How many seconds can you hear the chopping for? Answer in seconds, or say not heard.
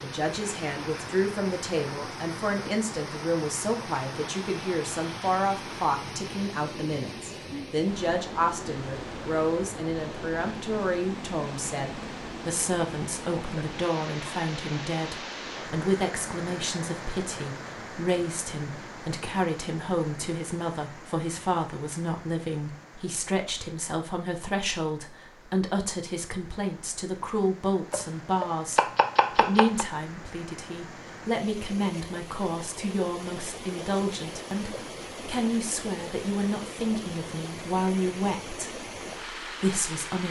2 s.